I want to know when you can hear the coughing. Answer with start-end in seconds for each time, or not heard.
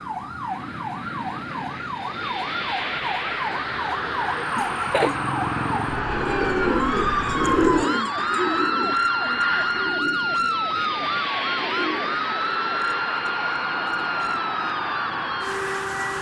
4.5-5.2.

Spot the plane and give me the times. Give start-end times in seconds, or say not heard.
0.0-16.1.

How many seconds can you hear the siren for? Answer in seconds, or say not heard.
16 s.